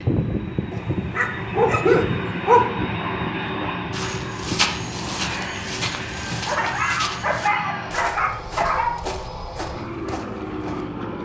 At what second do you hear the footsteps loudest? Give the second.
5 s.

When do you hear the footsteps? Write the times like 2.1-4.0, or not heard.
3.9-10.9.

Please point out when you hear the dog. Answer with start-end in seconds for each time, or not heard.
0.7-2.6, 6.5-8.9.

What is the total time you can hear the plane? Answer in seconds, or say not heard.
11 s.